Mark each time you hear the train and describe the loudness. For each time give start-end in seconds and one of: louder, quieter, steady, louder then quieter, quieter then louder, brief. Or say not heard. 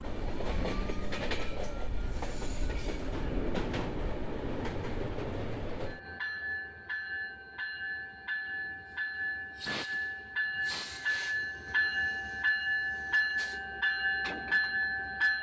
0.0-15.3 louder.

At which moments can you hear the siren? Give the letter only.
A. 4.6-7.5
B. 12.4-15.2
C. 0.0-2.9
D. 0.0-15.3
C.